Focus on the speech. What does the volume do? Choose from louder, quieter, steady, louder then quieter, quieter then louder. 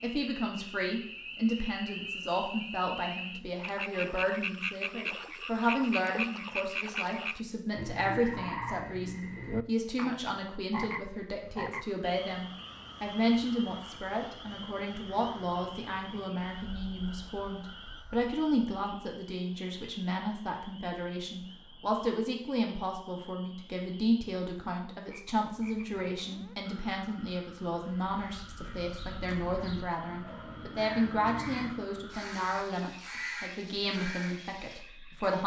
steady.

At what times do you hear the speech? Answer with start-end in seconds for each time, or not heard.
0.0-35.4.